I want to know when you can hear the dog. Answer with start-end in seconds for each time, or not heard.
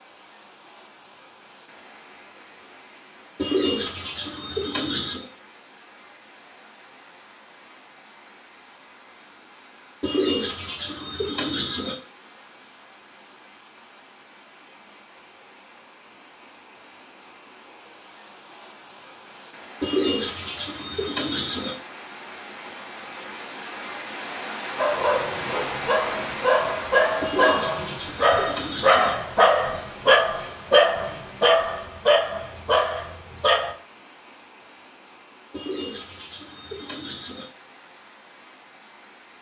24.8-33.8.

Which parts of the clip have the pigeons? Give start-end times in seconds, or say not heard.
3.4-5.3, 10.0-11.9, 19.8-21.8, 27.2-29.1, 35.5-37.5.